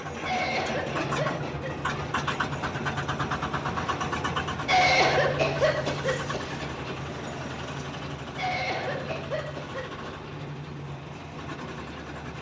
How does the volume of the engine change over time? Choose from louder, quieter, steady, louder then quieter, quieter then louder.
quieter.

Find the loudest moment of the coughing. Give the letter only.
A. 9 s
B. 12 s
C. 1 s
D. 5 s
D.